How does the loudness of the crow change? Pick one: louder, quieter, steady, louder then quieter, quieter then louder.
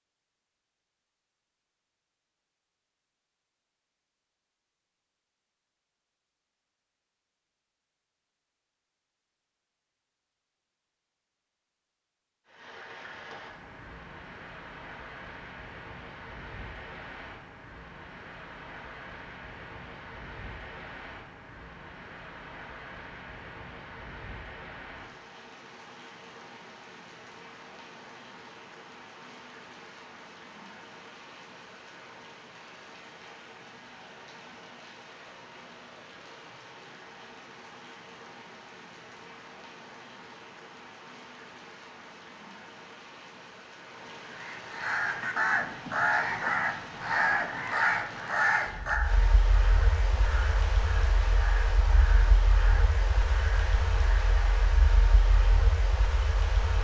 quieter.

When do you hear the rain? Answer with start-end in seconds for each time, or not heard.
12.4-56.8.